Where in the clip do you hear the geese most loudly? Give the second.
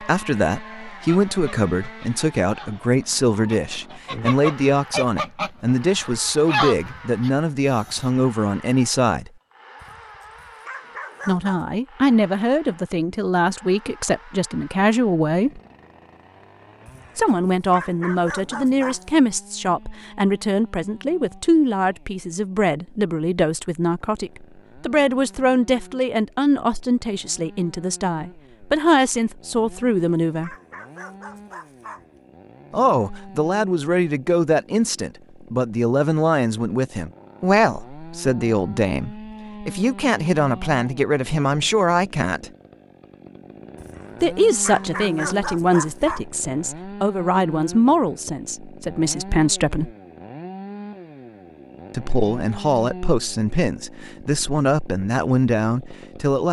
7 s.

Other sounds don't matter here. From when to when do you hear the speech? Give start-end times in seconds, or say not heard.
0.0-9.3, 11.2-15.6, 17.1-30.5, 32.7-42.5, 44.2-49.9, 51.9-56.4.